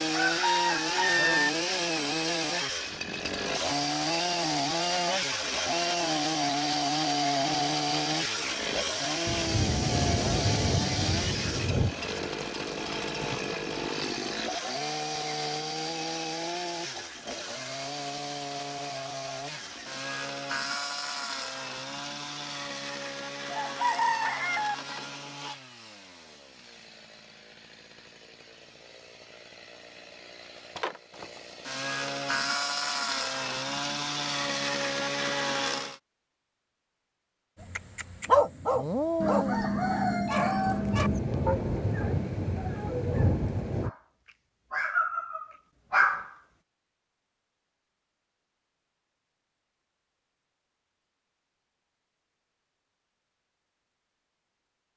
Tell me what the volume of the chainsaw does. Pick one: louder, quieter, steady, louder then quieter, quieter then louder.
quieter then louder.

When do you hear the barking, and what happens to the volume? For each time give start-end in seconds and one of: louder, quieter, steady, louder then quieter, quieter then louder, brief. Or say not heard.
37.6-44.0 quieter
44.7-46.3 brief.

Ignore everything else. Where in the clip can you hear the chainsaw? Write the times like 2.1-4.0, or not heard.
0.0-36.0.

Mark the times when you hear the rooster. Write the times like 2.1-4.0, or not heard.
0.1-1.5, 23.5-24.8, 39.2-41.2.